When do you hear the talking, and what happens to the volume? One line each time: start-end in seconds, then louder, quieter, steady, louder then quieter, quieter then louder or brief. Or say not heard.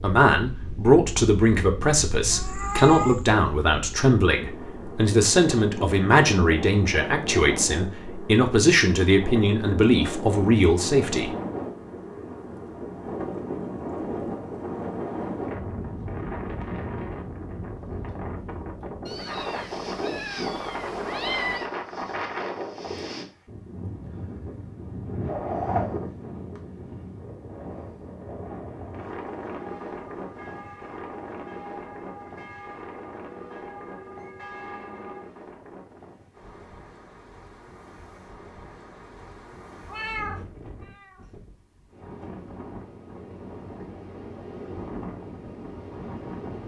0.0-11.3 steady.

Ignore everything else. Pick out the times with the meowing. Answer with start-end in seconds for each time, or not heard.
2.2-3.2, 19.1-21.7, 39.9-41.1.